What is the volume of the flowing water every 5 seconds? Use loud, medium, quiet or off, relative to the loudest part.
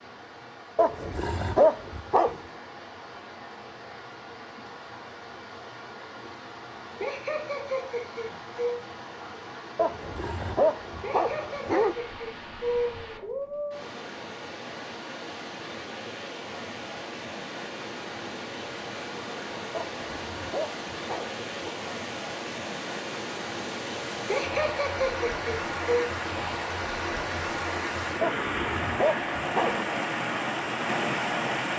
quiet, quiet, medium, medium, medium, loud, loud.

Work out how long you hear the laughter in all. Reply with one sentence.
The laughter can be heard for 6 seconds in total.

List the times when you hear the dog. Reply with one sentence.
The dog can be heard from 0.8 to 2.4 s, from 9.8 to 11.9 s, from 19.7 to 21.7 s and from 28.2 to 29.8 s.